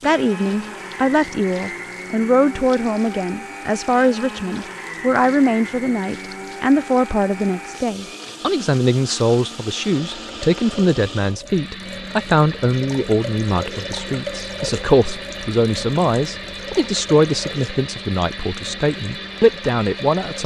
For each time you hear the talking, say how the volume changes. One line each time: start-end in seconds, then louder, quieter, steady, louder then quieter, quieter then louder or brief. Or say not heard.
0.0-20.4 steady.